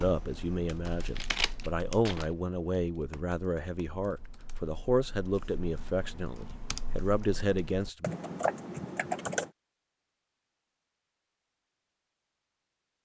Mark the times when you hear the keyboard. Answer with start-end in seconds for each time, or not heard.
0.0-9.5.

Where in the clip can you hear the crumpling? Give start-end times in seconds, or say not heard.
0.8-2.2.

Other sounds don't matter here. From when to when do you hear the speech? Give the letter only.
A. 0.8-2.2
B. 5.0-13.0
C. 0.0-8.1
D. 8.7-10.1
C.